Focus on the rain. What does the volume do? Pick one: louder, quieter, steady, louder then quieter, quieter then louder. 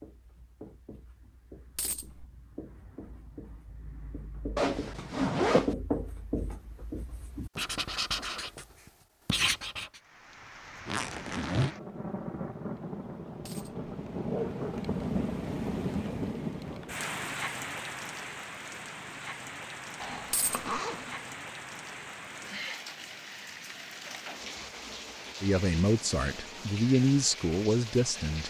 louder then quieter.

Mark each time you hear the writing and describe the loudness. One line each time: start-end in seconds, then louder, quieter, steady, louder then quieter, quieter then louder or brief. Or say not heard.
0.0-8.7 louder
9.2-10.0 brief.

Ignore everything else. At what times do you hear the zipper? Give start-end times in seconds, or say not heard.
4.5-5.8, 10.8-11.7, 20.0-21.3.